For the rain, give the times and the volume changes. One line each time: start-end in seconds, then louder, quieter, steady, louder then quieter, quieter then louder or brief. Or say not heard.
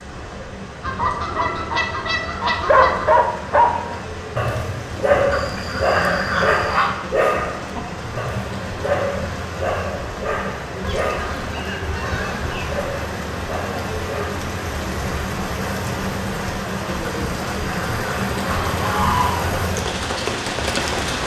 0.0-21.2 louder.